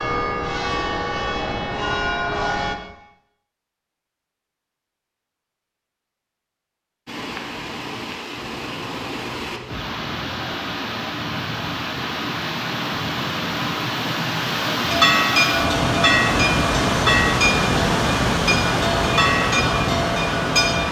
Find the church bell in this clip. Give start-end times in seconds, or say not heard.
0.0-2.8, 14.9-20.8.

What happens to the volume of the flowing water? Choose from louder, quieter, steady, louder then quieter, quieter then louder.
louder.